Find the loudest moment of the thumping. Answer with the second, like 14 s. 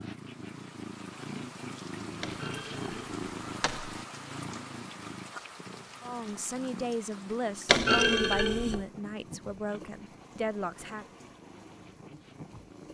8 s.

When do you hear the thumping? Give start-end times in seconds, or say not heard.
2.2-4.0, 7.7-8.8.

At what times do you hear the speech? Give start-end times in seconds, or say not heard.
6.0-11.1.